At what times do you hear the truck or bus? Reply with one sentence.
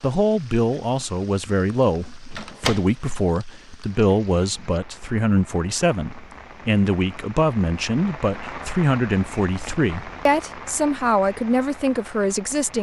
The truck or bus can't be heard in this clip.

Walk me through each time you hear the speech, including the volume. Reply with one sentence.
The speech can be heard from 0.0 to 12.7 s, at a steady volume.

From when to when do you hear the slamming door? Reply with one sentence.
The slamming door can be heard from 2.3 to 3.1 s.